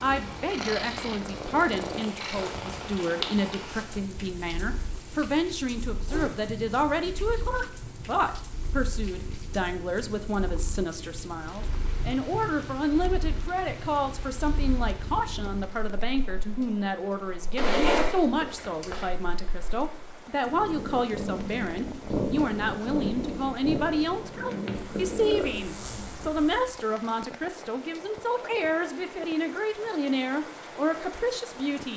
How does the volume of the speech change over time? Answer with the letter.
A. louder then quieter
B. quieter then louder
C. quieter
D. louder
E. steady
E.